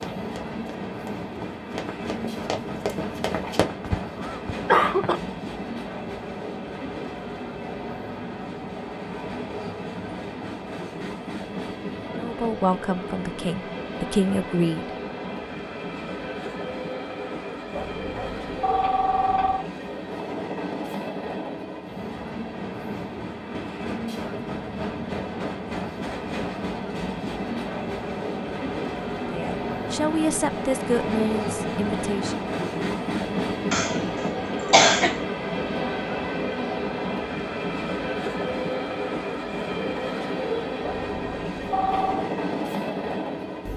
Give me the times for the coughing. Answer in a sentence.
The coughing can be heard from 3.4 to 5.2 s and from 33.7 to 35.2 s.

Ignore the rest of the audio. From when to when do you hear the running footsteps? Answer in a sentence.
The running footsteps can be heard from 0.0 to 3.6 s.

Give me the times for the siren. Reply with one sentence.
The siren can't be heard in this clip.